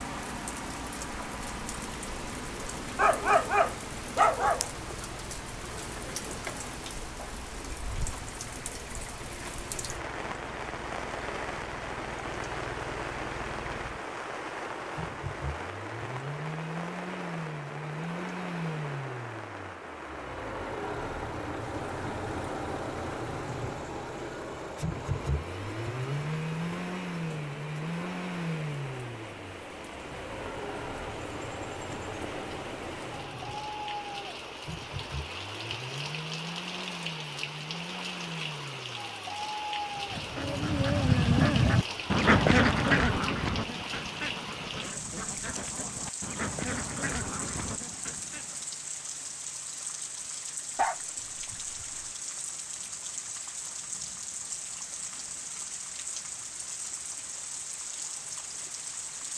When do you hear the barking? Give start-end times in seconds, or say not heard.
3.0-4.7, 50.8-52.1.